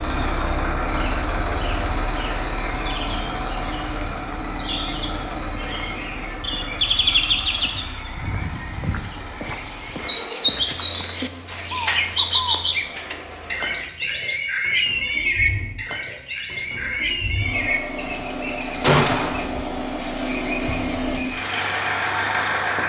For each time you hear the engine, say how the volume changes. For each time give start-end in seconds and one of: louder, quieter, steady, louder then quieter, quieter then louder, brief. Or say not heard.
0.0-22.8 quieter then louder.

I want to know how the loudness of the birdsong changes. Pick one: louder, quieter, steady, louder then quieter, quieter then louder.
louder then quieter.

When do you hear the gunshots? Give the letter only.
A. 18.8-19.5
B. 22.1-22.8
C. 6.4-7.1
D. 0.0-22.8
A.